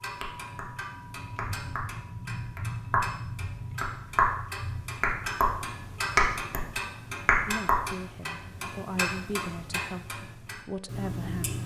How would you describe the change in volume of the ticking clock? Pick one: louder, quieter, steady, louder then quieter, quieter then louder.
louder then quieter.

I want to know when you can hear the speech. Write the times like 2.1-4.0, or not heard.
7.5-11.6.